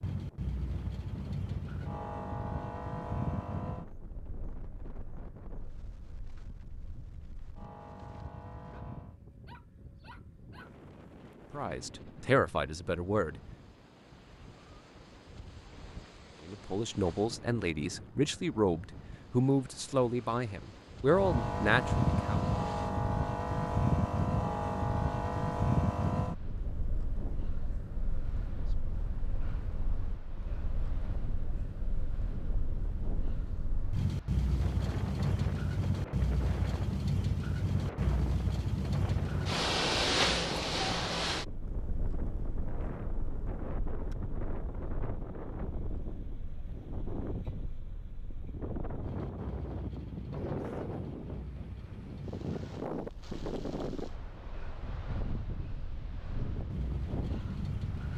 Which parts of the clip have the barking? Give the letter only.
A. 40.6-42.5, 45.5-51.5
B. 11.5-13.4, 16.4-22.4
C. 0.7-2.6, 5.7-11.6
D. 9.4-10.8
D.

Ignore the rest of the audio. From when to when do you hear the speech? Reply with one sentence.
The speech can be heard from 11.5 to 13.4 s and from 16.4 to 22.4 s.